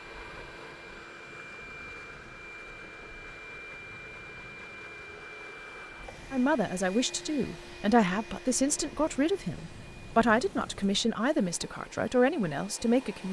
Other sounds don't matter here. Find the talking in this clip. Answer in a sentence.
The talking can be heard from 6.3 to 13.2 s.